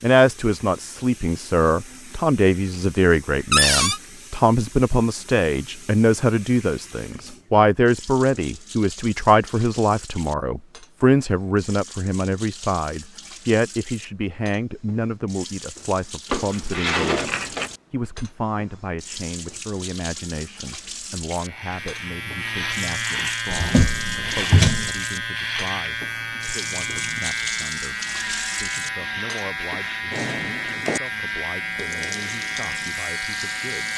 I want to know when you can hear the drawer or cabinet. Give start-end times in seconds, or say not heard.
3.5-4.0, 16.3-17.7, 23.5-24.9.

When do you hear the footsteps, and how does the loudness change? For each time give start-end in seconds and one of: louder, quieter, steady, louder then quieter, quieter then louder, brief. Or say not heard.
not heard.